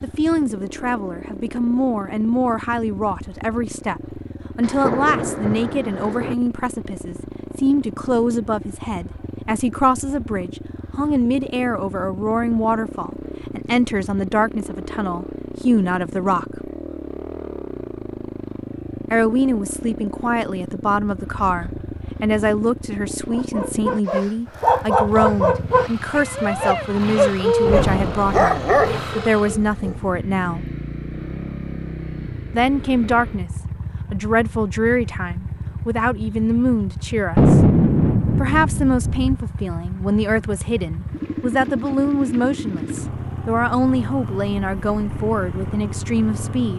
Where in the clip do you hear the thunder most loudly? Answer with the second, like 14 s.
38 s.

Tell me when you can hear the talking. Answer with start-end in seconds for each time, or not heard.
0.0-16.7, 19.1-30.6, 32.5-33.5, 34.1-37.6, 38.4-46.7.